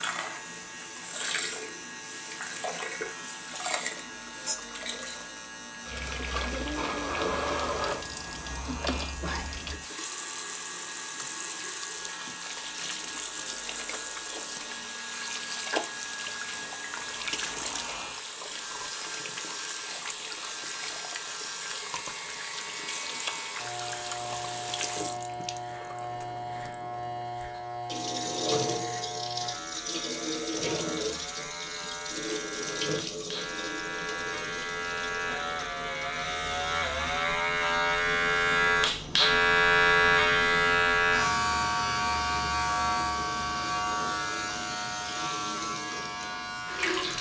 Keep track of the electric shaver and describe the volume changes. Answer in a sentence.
The loudness of the electric shaver goes up.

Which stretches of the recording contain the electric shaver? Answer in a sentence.
The electric shaver can be heard from 0.1 to 47.1 s.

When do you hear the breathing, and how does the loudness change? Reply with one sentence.
The breathing can't be heard in this clip.